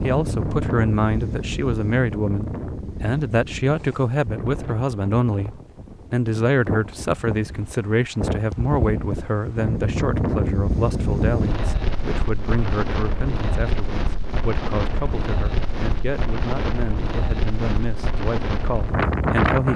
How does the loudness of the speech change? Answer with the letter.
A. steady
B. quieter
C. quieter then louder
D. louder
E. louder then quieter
B.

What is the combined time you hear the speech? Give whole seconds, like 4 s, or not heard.
20 s.